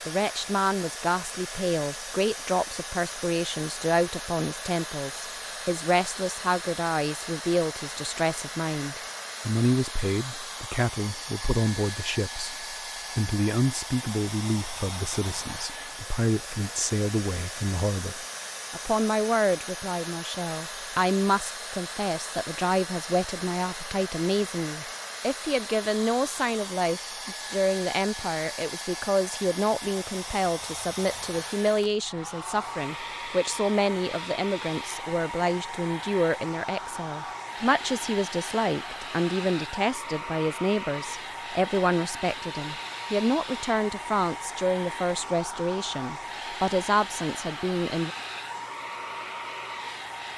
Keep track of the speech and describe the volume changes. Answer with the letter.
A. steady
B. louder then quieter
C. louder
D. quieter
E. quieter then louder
A.